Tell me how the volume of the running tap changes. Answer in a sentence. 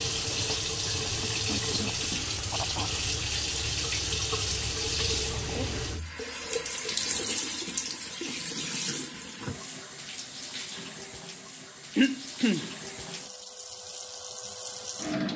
The volume of the running tap goes down.